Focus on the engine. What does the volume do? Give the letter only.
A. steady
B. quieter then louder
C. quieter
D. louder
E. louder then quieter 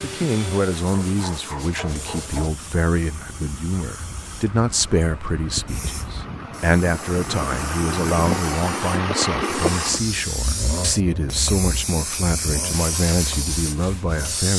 E.